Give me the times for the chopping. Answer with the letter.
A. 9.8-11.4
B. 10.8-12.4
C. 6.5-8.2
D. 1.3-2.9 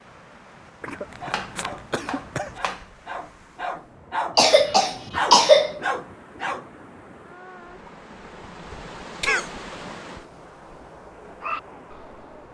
D.